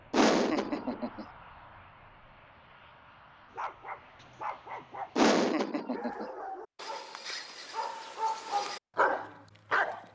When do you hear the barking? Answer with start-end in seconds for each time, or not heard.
3.5-10.1.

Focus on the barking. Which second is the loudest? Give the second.
9 s.